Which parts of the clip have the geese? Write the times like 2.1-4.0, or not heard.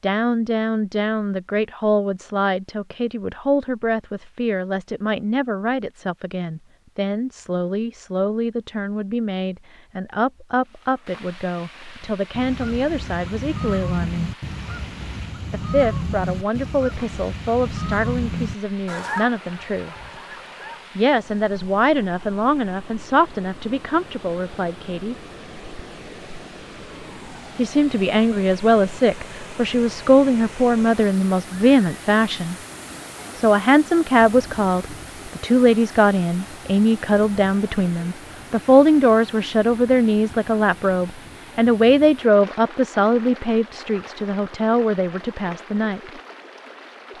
12.1-21.1.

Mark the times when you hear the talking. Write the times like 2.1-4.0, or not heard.
0.0-14.3, 15.5-19.9, 20.9-25.1, 27.6-32.5, 33.4-46.1.